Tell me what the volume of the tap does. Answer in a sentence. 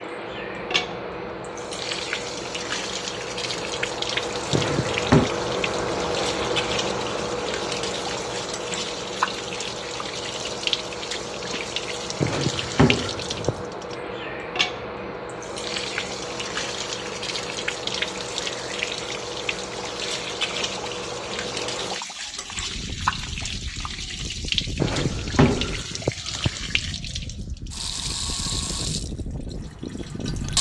The volume of the tap stays about the same.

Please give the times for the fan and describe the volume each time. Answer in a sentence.
The fan can be heard from 0.0 to 30.5 s, getting quieter.